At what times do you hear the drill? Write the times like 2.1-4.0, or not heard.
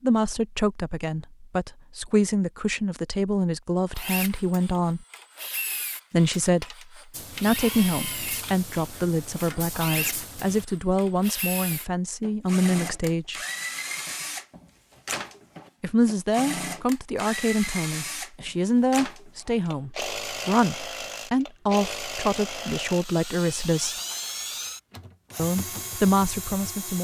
3.9-26.9.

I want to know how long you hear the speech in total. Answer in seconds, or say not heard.
21 s.